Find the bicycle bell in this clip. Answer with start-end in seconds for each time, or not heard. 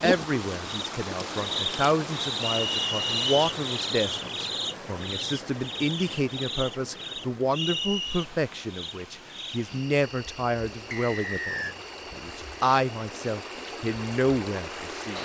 not heard.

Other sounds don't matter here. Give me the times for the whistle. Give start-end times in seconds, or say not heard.
2.4-3.4, 7.5-8.2, 10.9-11.8.